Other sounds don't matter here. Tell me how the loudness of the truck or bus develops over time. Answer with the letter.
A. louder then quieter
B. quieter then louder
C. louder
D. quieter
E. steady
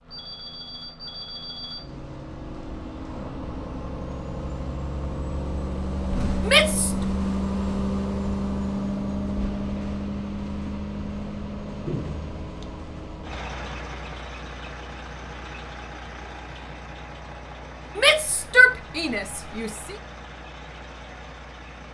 A.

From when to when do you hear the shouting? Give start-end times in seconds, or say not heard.
6.4-7.0, 17.9-19.9.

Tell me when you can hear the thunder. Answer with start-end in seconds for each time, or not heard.
9.4-13.2.